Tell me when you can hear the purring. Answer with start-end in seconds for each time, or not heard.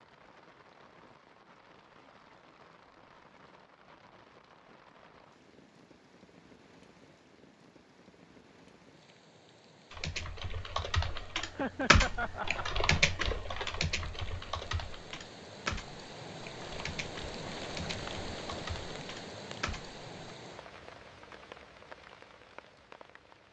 not heard.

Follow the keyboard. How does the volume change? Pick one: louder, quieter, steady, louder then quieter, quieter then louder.
quieter.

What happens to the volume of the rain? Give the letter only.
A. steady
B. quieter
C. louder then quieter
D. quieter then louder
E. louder
E.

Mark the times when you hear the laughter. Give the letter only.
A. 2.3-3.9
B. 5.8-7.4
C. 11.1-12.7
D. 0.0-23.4
C.